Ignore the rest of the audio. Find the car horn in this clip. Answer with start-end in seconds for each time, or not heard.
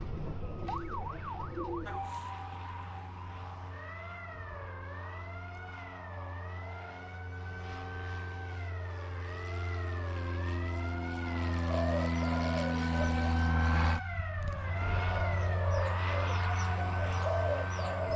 not heard.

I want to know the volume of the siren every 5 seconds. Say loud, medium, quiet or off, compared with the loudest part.
loud, medium, loud, loud.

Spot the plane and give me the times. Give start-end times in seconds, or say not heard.
0.0-18.1.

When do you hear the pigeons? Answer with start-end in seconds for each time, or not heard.
0.0-2.0, 11.7-13.3, 15.0-18.1.